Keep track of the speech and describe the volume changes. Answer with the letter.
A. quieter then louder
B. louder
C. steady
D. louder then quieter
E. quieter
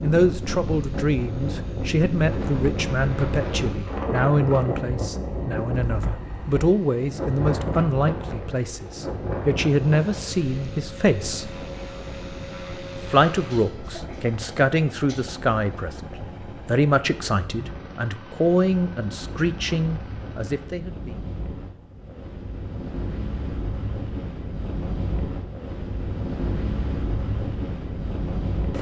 C.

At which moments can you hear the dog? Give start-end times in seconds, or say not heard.
not heard.